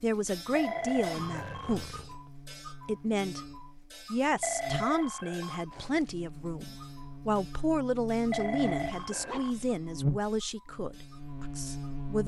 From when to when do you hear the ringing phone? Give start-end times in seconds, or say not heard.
0.6-2.1, 4.4-6.0, 8.3-9.6.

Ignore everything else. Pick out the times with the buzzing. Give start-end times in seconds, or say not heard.
0.0-12.2.